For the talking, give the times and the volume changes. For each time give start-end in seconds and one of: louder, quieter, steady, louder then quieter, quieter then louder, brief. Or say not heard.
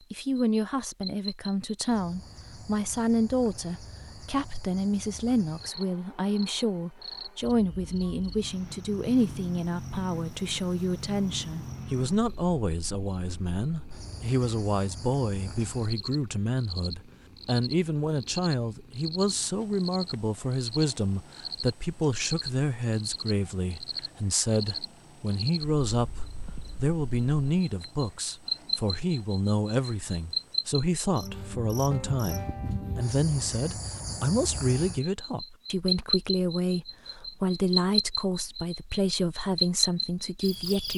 0.1-40.9 steady.